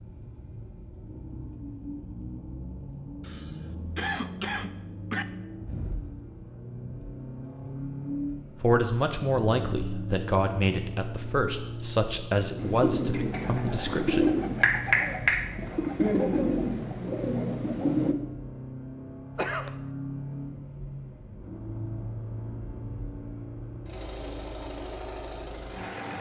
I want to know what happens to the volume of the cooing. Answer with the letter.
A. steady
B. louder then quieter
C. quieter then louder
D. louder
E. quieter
B.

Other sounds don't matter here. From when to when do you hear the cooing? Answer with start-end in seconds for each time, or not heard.
12.6-18.1.